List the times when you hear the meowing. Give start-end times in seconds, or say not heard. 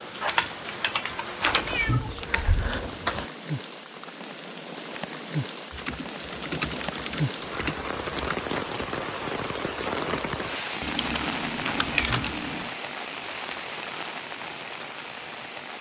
1.4-3.3, 11.6-12.3.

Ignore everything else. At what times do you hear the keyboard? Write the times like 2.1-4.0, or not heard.
0.2-1.8, 5.7-8.3, 10.8-12.7.